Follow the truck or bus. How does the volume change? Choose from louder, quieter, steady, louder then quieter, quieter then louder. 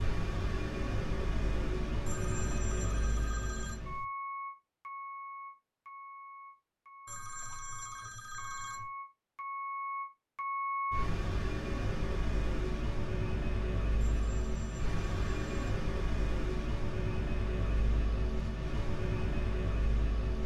quieter then louder.